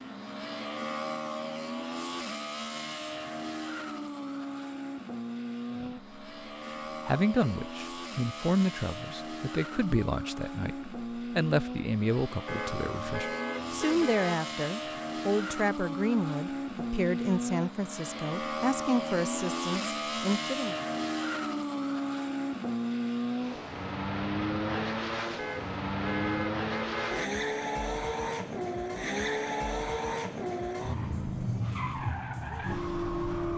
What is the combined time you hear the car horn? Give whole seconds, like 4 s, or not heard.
4 s.